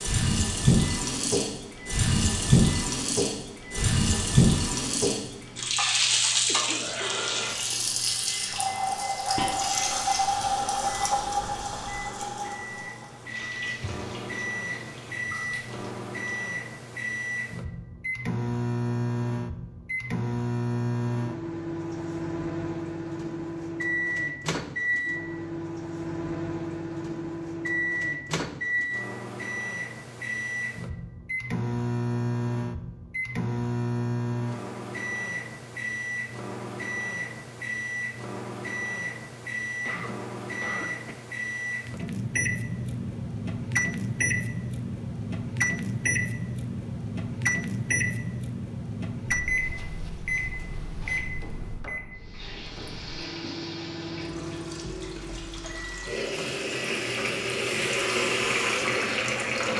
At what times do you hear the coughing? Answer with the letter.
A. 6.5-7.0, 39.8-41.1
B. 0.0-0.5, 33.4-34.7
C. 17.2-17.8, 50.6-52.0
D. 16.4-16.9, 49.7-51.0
A.